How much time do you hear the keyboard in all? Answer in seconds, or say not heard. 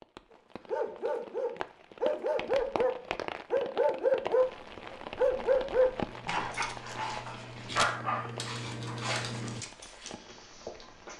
5 s.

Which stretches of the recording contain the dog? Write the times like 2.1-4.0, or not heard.
0.7-10.2.